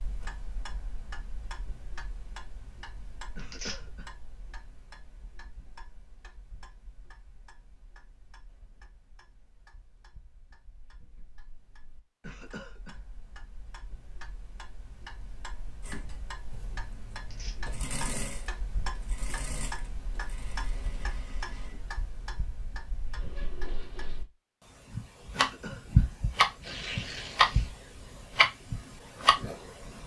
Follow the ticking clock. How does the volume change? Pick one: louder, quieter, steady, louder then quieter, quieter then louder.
quieter then louder.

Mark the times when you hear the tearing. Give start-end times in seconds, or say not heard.
3.4-3.8, 17.1-17.6, 26.6-27.8.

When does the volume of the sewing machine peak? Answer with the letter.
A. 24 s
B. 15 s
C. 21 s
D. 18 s
D.